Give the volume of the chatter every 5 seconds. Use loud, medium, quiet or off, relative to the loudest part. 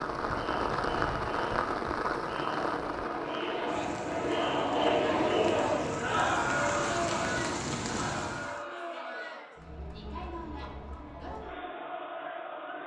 loud, loud, medium.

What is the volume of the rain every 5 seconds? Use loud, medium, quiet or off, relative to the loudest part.
loud, loud, off.